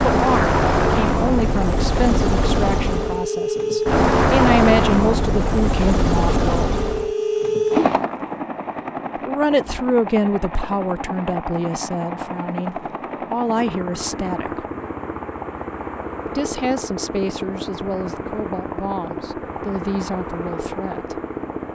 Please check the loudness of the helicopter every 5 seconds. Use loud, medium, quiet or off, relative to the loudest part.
loud, loud, medium, medium, medium.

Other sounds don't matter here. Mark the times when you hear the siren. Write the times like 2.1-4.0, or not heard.
not heard.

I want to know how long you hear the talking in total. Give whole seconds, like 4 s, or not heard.
17 s.